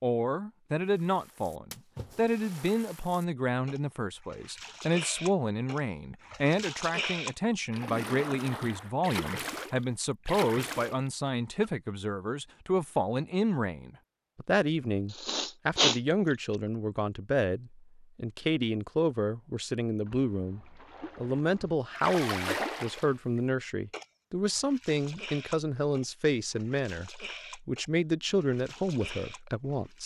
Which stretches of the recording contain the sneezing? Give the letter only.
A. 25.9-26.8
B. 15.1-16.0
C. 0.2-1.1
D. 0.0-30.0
B.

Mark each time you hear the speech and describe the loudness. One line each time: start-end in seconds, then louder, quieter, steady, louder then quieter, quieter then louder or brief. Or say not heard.
0.0-30.0 steady.